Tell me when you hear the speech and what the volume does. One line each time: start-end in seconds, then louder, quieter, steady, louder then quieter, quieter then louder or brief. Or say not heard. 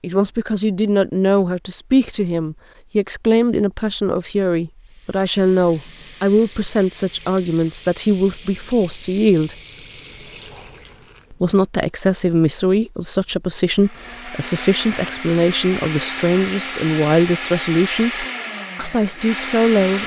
0.0-9.6 steady
11.3-20.0 steady.